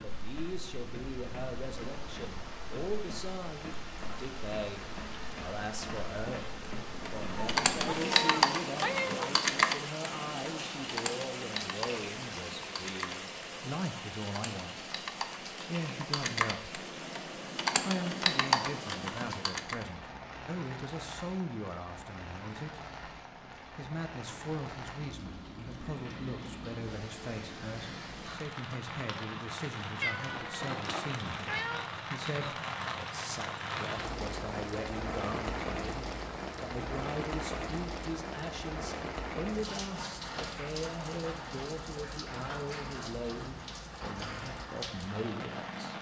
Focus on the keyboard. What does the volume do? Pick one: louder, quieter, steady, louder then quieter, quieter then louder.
quieter then louder.